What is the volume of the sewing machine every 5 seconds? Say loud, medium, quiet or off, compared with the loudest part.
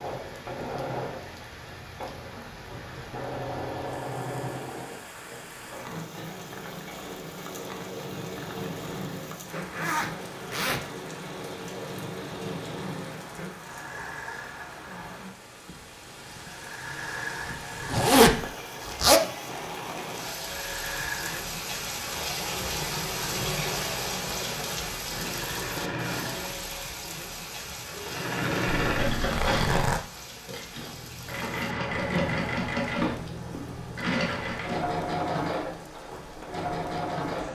medium, medium, medium, medium, medium, loud, loud, loud.